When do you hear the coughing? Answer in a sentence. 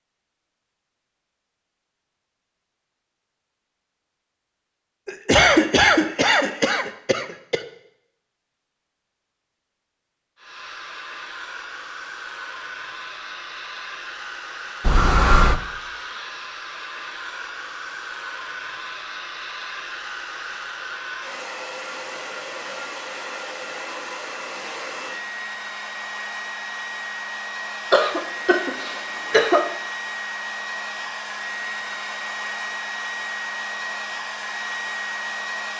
The coughing can be heard from 5.0 to 7.6 s, from 14.8 to 15.6 s and from 27.9 to 29.8 s.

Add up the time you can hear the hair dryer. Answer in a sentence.
You can hear the hair dryer for 25 seconds altogether.